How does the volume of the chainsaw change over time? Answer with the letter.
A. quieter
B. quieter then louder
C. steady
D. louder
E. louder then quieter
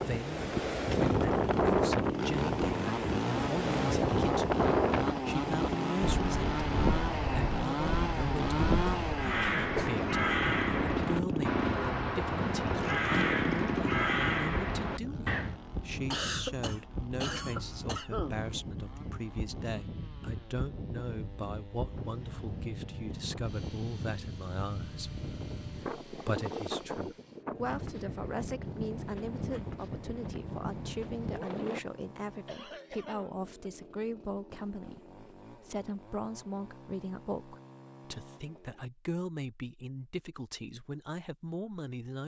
A.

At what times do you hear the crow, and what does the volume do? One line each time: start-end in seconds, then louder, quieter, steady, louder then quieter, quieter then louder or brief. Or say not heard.
9.1-15.6 steady.